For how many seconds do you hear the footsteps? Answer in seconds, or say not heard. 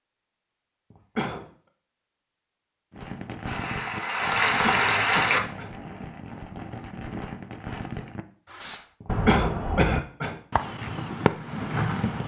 not heard.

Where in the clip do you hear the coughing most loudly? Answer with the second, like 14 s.
9 s.